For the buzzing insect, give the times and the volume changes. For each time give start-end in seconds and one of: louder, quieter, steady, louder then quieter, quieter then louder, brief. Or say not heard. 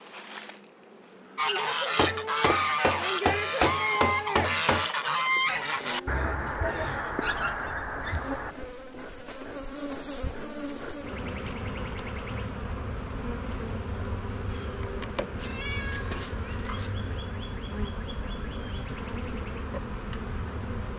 0.0-20.9 louder.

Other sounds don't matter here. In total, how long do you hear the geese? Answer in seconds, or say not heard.
7 s.